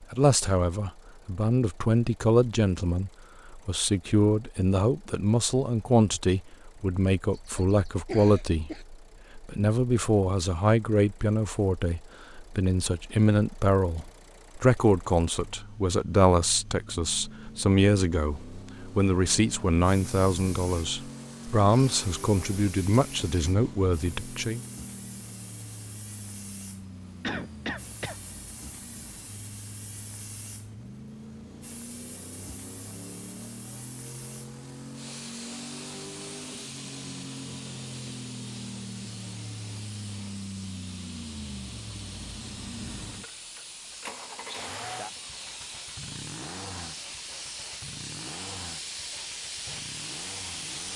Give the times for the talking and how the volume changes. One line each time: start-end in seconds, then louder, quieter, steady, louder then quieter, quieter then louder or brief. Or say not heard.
0.0-24.6 steady.